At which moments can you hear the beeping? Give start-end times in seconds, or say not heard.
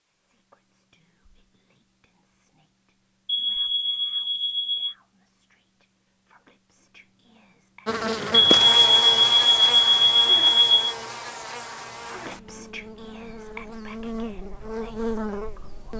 3.2-5.0, 8.3-10.9.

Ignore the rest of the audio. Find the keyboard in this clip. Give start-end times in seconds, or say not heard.
not heard.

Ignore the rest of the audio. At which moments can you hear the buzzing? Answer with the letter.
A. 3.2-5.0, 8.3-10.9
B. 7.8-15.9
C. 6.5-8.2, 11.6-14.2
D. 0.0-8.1
B.